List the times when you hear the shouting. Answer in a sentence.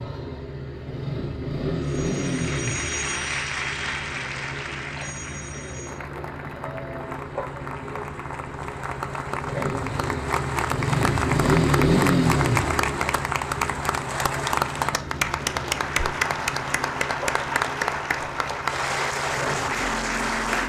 The shouting can't be heard in this clip.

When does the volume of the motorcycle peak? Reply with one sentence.
The volume of the motorcycle peaks at 12 seconds.